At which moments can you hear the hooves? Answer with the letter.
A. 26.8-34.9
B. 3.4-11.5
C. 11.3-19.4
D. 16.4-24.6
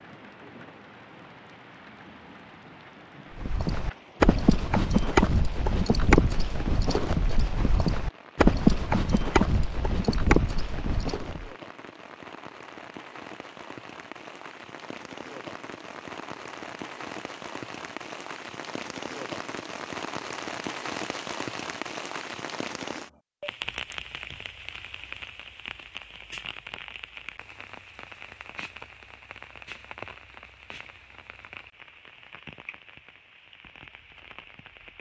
B.